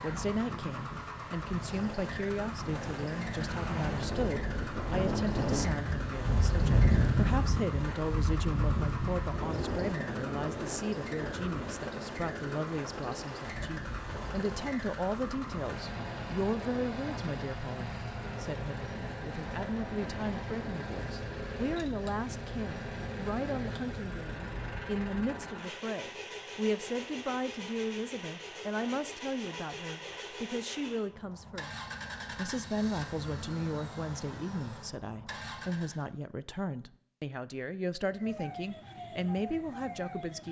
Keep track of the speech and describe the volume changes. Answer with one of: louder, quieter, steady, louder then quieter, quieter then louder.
steady.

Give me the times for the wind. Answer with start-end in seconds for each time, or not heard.
0.0-25.4.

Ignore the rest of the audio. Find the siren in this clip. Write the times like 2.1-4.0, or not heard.
38.0-40.4.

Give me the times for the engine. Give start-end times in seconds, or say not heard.
0.0-36.0.